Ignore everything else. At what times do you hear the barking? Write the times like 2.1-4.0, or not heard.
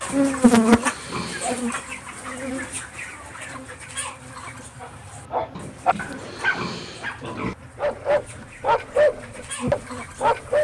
4.8-10.6.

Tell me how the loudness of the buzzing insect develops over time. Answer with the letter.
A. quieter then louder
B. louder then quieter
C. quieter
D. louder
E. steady
A.